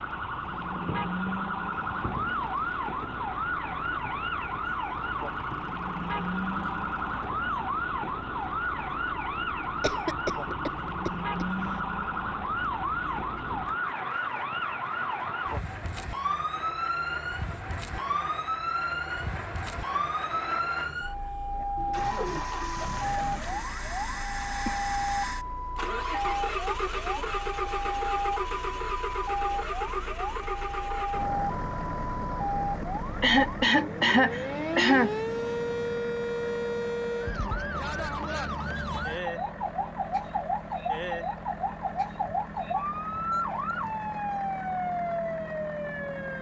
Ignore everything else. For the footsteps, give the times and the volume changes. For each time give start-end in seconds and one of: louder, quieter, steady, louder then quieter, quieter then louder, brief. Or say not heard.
not heard.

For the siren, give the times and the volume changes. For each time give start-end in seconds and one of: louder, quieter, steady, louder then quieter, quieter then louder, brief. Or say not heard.
0.0-46.3 steady.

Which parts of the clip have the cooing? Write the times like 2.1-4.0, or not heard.
21.8-23.6.